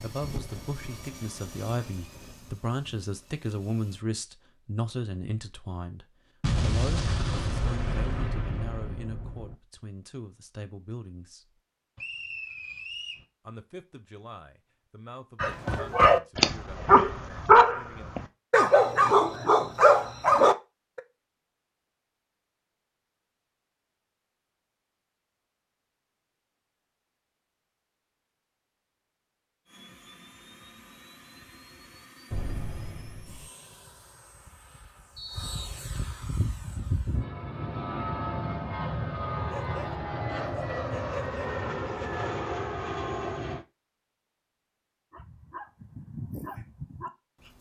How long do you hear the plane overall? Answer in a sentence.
You can hear the plane for 18 seconds altogether.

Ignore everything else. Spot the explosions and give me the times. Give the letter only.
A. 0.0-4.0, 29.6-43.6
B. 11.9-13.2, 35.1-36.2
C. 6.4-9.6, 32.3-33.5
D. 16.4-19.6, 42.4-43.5
C.